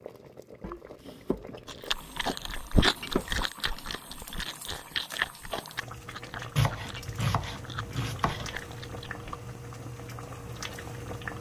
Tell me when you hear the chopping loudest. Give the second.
7 s.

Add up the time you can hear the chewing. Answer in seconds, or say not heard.
8 s.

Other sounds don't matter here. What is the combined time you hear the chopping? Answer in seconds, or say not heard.
5 s.